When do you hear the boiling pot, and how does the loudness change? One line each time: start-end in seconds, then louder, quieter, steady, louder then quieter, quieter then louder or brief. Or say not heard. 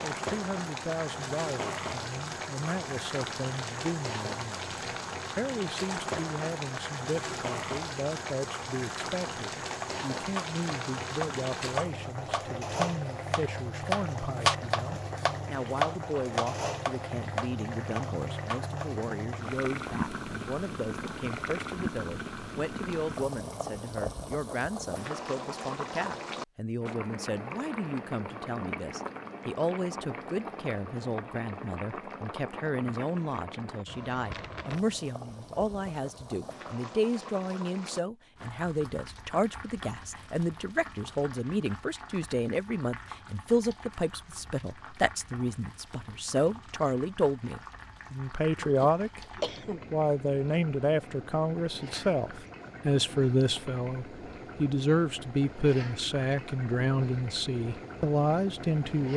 0.0-59.1 quieter.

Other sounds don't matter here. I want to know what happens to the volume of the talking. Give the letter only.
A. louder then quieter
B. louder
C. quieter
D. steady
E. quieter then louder
B.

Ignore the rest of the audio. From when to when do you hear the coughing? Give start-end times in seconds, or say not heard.
48.5-49.9.